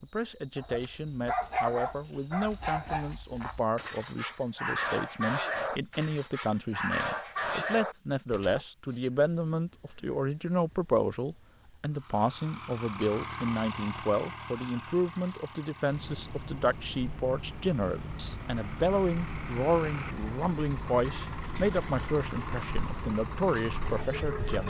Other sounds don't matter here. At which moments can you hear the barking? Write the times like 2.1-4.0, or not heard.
0.6-8.6.